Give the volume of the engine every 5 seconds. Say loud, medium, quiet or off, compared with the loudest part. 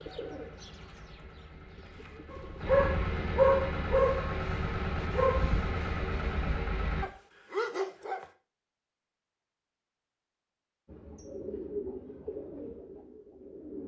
loud, loud, off.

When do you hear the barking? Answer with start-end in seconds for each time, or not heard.
2.3-8.2.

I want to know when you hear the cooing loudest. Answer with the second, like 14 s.
12 s.